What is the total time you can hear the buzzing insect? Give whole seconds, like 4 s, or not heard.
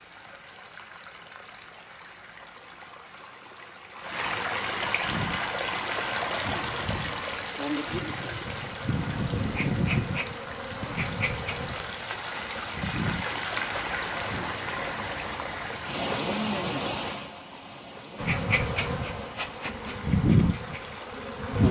13 s.